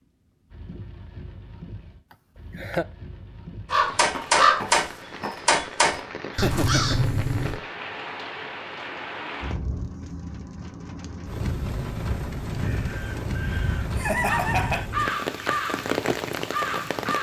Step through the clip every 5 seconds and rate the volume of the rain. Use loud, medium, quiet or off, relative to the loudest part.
quiet, medium, loud, loud.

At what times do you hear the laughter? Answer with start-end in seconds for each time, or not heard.
2.1-2.9, 6.3-7.0, 13.9-14.9.